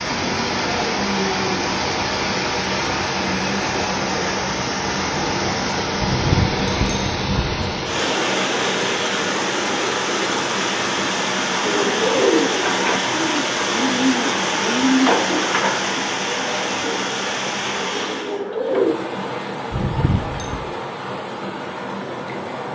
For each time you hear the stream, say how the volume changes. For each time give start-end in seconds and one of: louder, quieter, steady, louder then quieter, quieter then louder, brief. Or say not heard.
0.0-22.7 quieter.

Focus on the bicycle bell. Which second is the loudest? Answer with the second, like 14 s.
6 s.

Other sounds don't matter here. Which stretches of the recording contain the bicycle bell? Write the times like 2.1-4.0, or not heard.
6.0-7.7, 19.7-20.6.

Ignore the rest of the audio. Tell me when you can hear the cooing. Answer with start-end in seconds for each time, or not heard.
11.6-18.9.